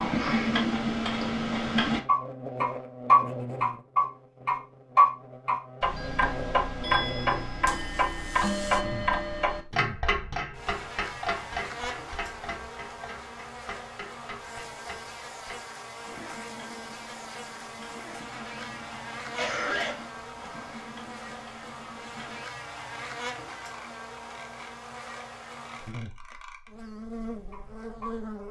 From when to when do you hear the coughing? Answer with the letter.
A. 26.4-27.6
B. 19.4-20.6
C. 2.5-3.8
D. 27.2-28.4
B.